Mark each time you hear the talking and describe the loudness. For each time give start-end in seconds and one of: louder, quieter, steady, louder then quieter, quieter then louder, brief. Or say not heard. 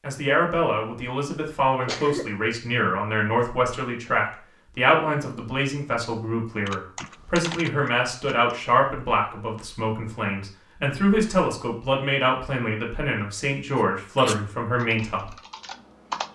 0.0-15.3 steady.